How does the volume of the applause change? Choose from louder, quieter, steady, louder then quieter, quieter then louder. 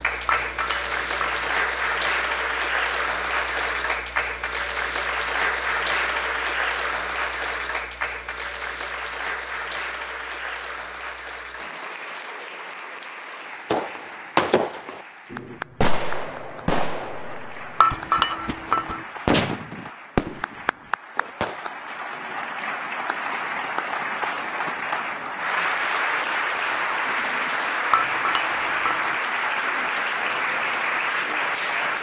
quieter then louder.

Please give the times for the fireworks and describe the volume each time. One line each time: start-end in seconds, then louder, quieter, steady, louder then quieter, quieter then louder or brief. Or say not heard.
13.7-21.7 quieter then louder.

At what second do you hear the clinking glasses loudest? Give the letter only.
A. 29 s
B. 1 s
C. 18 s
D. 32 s
C.